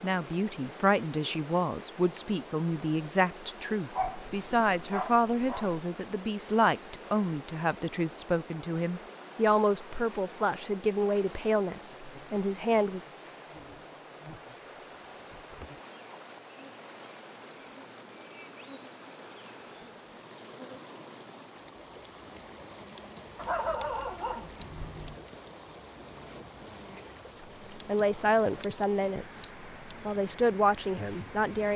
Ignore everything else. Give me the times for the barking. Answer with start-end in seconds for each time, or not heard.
3.9-5.8, 23.4-25.2.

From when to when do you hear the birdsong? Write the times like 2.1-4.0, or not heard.
not heard.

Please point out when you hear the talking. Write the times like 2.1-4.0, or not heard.
0.0-13.1, 27.4-31.7.